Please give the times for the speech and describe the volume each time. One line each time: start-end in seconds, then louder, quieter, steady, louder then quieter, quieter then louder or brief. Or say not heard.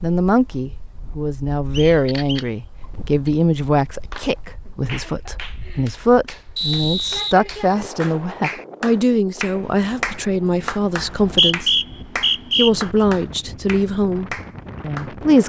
0.0-11.8 steady
12.6-15.4 brief.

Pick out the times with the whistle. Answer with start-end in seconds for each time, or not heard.
1.7-2.5, 6.5-8.1, 10.9-12.7.